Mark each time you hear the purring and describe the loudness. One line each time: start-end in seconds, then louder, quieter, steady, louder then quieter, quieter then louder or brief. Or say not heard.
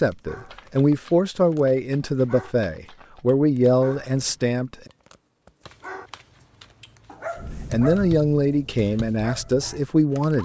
not heard.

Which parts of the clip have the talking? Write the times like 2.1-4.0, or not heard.
0.0-4.8, 7.7-10.3.